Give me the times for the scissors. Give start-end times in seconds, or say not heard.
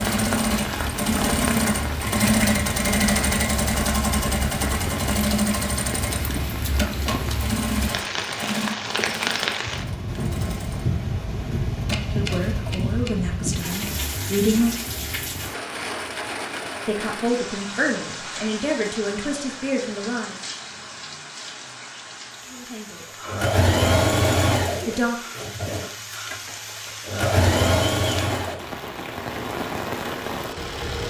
11.9-13.9.